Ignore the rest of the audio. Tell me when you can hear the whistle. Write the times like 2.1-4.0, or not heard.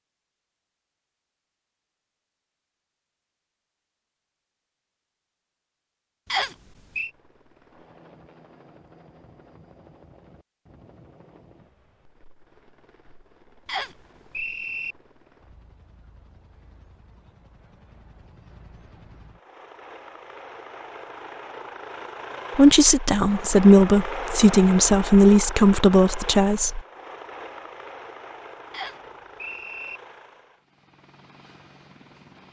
6.3-7.1, 13.7-14.9, 28.7-30.0.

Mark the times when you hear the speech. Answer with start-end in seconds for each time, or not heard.
22.6-26.8.